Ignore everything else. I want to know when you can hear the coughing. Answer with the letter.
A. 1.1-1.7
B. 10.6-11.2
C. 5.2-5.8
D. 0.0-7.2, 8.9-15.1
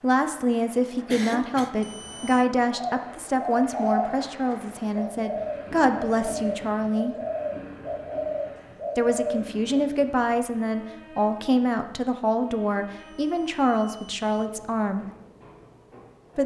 A.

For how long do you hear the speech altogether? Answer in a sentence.
You can hear the speech for 13 seconds altogether.